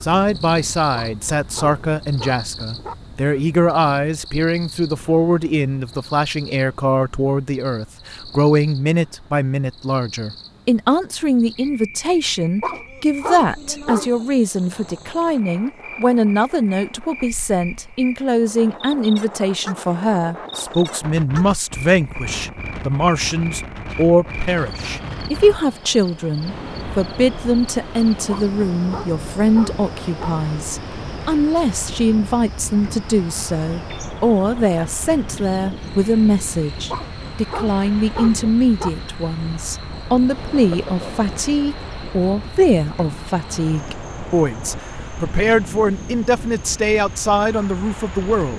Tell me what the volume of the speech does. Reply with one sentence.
The loudness of the speech stays about the same.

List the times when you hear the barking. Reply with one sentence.
The barking can be heard from 0.9 to 3.0 s, from 12.6 to 14.1 s, from 28.3 to 30.3 s and from 36.9 to 38.9 s.